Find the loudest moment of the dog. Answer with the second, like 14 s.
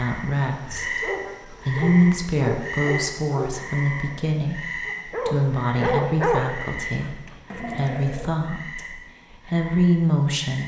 6 s.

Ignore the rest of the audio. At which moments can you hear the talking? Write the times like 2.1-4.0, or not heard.
0.0-10.6.